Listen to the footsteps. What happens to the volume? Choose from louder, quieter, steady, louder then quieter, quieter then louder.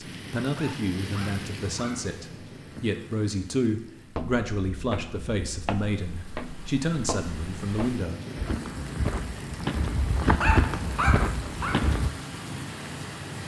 louder.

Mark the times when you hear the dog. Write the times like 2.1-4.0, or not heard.
0.4-2.0, 10.2-11.8.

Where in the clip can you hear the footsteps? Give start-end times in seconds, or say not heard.
4.1-12.1.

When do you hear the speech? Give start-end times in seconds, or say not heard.
0.0-8.2.